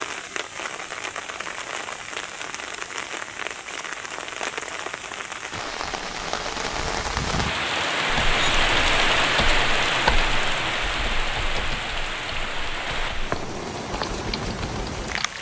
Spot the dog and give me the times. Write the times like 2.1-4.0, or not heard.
not heard.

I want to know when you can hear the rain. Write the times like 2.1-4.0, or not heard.
0.0-15.3.